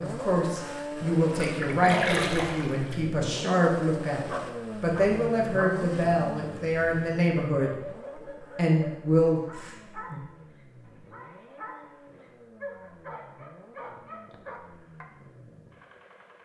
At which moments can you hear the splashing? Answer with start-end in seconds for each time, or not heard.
1.6-3.0.